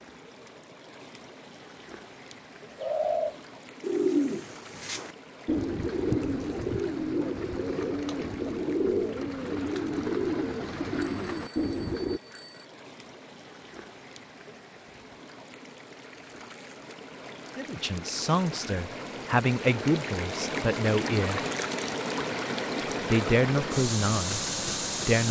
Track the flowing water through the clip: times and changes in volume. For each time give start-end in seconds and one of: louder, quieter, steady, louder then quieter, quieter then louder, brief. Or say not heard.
0.0-25.2 louder.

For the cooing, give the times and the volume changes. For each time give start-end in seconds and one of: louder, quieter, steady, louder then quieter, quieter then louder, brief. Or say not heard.
2.7-12.2 steady.